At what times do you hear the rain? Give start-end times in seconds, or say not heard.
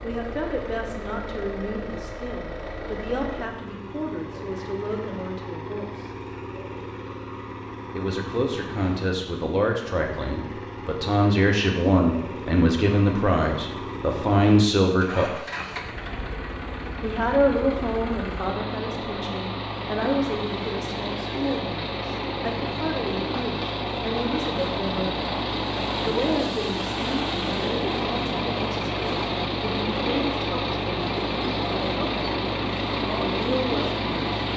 not heard.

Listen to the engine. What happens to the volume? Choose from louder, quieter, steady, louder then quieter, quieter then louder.
louder.